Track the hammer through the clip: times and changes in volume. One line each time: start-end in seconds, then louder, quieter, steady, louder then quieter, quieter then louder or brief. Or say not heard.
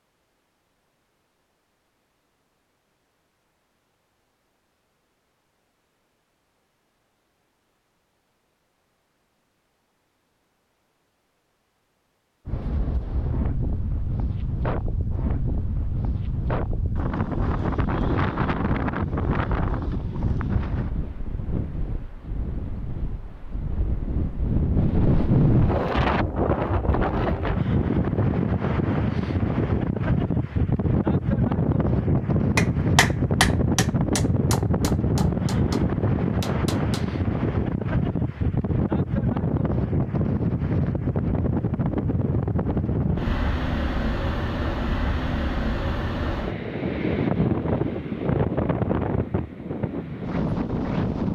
32.5-37.1 quieter.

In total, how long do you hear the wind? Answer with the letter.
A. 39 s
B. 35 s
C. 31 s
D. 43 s
A.